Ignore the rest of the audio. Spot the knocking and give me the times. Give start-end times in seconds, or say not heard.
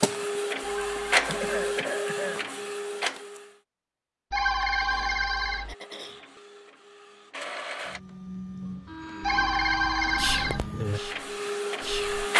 not heard.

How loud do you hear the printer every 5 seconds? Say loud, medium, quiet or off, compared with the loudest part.
loud, medium, loud.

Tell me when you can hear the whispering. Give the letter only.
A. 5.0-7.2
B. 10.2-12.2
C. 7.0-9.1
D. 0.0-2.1
B.